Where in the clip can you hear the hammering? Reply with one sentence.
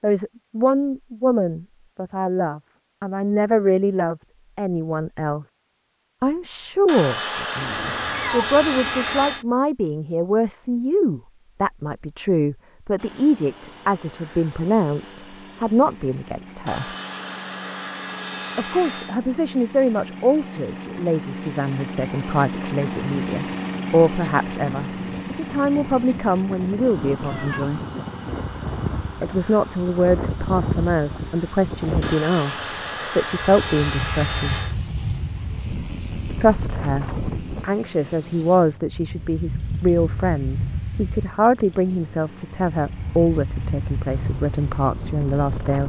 The hammering can't be heard in this clip.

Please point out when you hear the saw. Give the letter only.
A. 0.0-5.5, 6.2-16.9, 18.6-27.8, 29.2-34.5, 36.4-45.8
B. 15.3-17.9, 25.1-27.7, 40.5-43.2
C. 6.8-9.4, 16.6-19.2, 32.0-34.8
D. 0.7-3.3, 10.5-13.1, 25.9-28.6
C.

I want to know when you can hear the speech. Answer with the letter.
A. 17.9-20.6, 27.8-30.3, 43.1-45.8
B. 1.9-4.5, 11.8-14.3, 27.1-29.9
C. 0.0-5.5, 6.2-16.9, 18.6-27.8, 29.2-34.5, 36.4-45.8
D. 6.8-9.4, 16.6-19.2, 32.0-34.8
C.